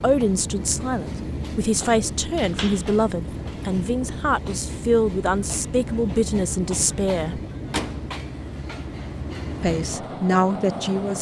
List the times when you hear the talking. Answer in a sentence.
The talking can be heard from 0.0 to 7.4 s and from 9.6 to 11.1 s.